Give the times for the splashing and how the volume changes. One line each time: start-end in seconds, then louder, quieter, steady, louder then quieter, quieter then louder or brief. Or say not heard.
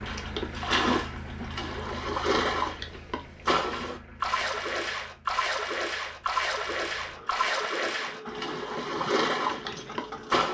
0.0-10.4 steady.